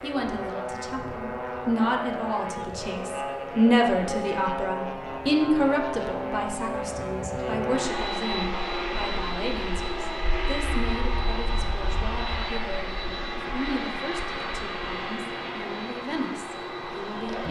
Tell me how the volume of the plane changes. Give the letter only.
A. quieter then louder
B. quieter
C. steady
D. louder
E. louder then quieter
C.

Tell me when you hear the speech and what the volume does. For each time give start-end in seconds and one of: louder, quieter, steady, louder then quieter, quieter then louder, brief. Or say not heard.
0.0-17.4 quieter.